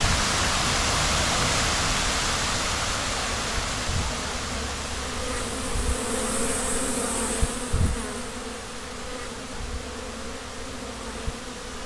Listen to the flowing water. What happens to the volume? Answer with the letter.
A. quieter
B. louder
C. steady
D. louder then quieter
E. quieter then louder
A.